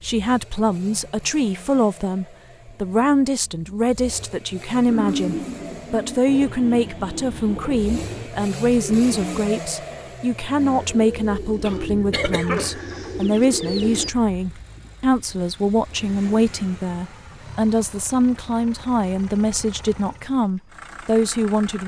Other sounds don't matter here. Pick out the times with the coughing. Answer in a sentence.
The coughing can be heard from 11.6 to 12.8 s.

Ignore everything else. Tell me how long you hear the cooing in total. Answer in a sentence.
You can hear the cooing for 9 seconds altogether.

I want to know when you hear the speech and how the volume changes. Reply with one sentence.
The speech can be heard from 0.0 to 21.8 s, at a steady volume.